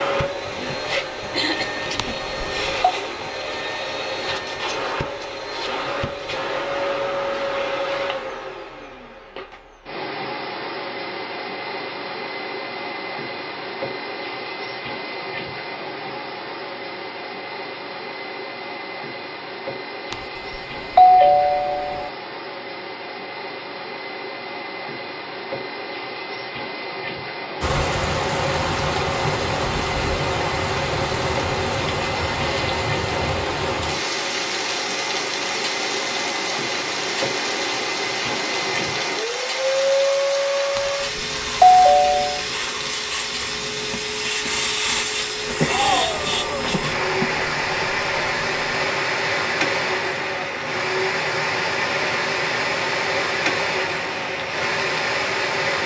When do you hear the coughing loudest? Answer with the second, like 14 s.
46 s.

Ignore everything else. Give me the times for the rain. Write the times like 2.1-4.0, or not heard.
27.6-55.8.